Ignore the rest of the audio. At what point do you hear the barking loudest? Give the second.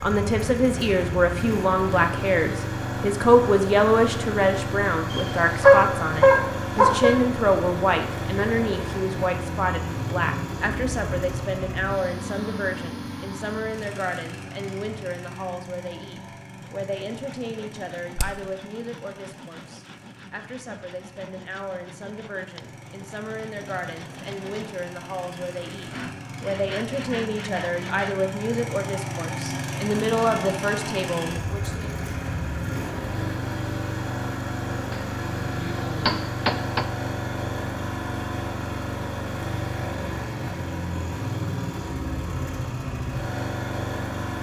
6 s.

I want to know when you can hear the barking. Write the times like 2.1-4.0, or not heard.
5.1-7.2.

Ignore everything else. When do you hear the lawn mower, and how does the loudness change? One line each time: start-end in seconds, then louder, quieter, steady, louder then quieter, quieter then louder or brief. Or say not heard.
0.0-44.3 quieter then louder.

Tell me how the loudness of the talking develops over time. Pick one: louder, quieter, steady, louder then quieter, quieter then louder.
quieter then louder.